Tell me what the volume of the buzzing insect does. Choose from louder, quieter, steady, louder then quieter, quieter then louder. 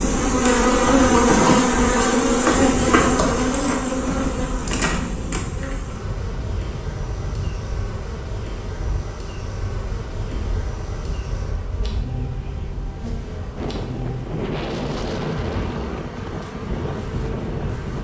quieter.